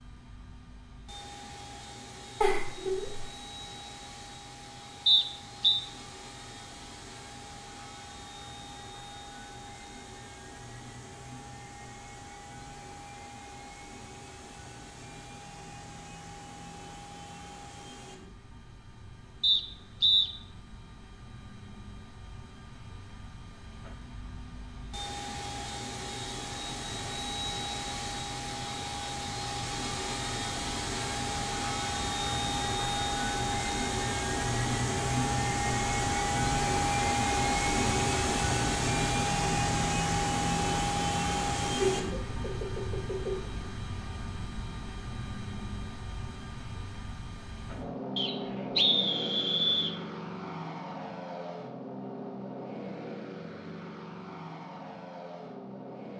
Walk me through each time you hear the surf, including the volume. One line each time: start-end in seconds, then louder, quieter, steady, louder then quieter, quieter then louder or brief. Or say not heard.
not heard.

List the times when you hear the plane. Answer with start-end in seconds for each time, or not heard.
0.0-56.1.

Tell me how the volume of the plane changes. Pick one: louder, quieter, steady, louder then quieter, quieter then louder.
louder then quieter.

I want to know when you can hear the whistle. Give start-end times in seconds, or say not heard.
5.0-5.8, 19.4-20.3, 48.1-50.0.